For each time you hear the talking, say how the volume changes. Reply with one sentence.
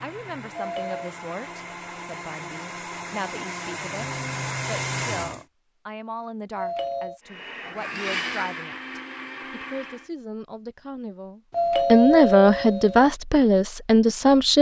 The talking can be heard from 0.0 to 14.5 s, getting louder.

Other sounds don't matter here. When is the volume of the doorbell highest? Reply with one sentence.
The loudest moment of the doorbell is at 12 seconds.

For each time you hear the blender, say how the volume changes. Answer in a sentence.
The blender can be heard from 0.0 to 5.5 s, getting louder; and briefly from 7.2 to 10.1 s.